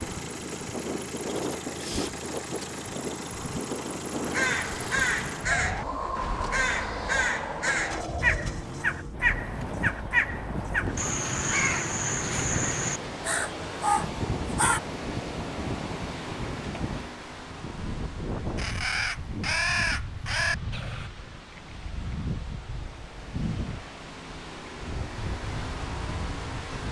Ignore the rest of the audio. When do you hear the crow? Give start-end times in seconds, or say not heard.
4.2-14.8, 18.6-21.1.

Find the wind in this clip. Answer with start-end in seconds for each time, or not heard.
0.0-26.8.